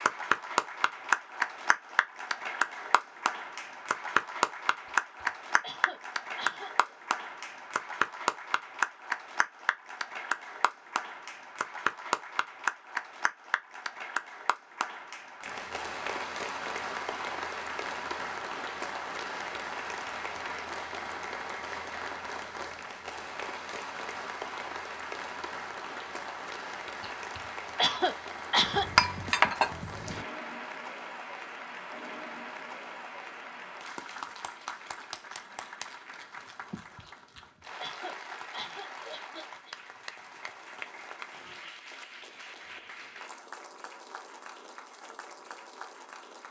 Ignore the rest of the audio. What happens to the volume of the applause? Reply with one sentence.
The loudness of the applause goes down.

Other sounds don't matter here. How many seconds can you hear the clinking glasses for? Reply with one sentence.
You can hear the clinking glasses for 2 seconds altogether.